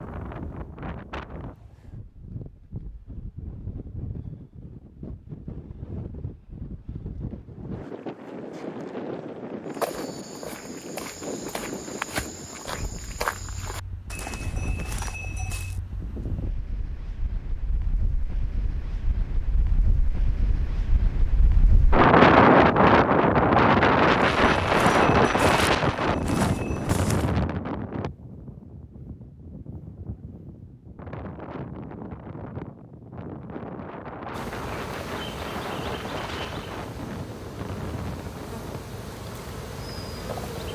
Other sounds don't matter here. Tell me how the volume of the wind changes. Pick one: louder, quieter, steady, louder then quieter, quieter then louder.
louder then quieter.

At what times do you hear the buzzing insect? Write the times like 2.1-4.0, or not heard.
34.3-40.7.